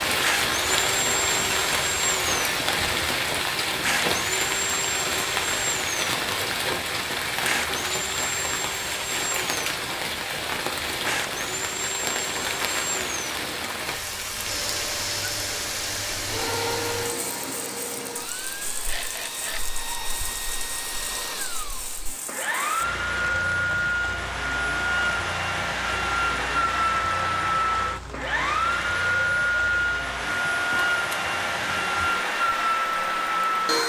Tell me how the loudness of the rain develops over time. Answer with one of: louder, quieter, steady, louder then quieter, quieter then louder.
quieter.